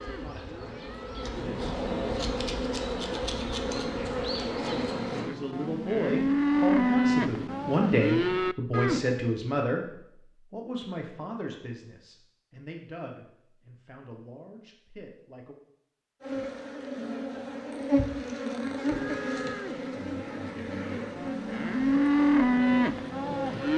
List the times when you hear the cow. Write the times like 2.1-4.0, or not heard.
0.0-2.1, 4.5-9.2, 18.8-23.7.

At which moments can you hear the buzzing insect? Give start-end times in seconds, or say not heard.
0.0-5.3, 16.2-23.7.